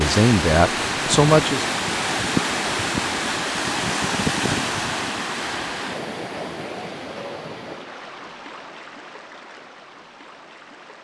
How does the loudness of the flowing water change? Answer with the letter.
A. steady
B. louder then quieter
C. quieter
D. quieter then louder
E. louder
C.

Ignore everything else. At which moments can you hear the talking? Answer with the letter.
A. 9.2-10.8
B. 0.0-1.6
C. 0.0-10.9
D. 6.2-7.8
B.